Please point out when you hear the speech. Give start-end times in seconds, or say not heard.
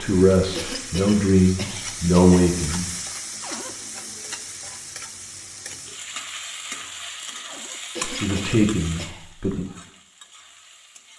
0.0-2.9, 8.1-9.7.